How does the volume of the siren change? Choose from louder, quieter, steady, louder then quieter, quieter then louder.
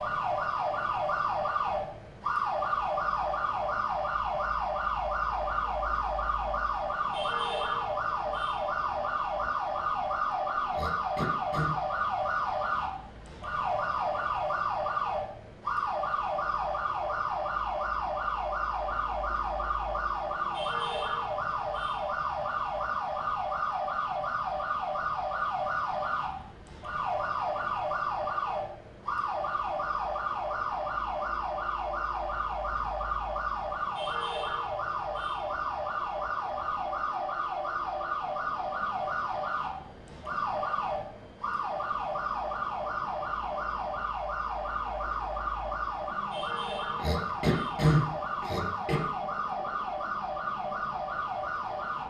steady.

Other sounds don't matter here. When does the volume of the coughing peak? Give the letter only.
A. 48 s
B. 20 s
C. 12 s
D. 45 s
A.